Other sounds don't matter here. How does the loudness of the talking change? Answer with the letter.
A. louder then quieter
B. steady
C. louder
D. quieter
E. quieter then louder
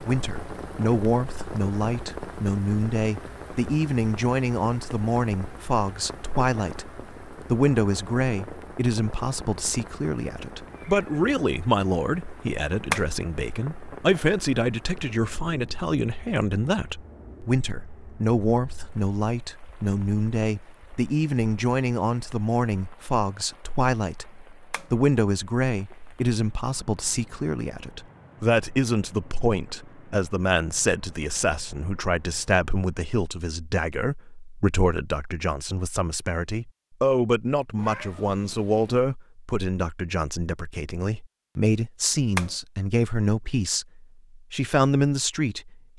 B.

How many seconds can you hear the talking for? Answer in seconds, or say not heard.
46 s.